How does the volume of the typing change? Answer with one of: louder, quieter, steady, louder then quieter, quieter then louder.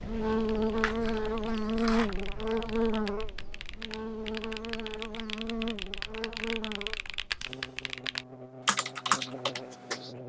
louder.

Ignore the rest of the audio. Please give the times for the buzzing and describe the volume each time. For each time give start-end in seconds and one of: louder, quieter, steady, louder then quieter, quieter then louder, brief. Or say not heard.
0.0-10.2 quieter.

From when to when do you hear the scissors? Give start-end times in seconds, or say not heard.
0.8-2.1, 7.3-7.9.